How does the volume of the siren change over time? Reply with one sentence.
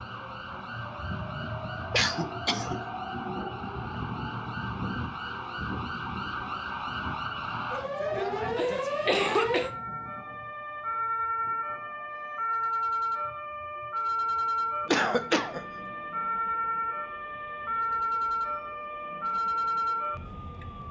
The loudness of the siren goes up.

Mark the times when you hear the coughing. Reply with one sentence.
You can hear the coughing from 1.9 to 2.8 s, from 8.6 to 9.7 s and from 14.8 to 15.7 s.